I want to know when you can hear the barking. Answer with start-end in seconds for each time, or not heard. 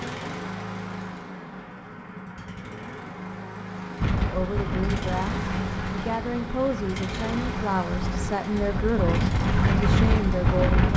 not heard.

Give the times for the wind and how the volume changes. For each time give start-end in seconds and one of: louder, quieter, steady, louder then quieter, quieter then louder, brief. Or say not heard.
4.0-10.9 quieter then louder.